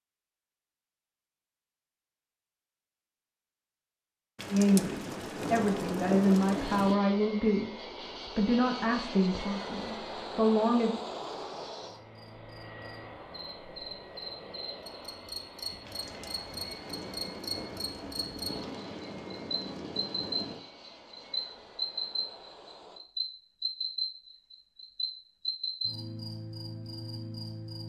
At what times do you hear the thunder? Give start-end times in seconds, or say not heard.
4.3-7.0, 15.8-20.6.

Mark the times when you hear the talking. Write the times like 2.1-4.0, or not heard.
4.5-10.9.